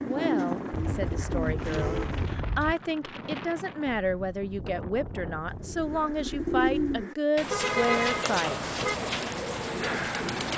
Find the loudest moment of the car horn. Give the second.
8 s.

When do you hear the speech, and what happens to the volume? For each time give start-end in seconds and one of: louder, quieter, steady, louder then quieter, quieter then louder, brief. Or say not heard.
0.0-8.6 louder.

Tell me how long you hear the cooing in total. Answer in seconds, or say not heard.
7 s.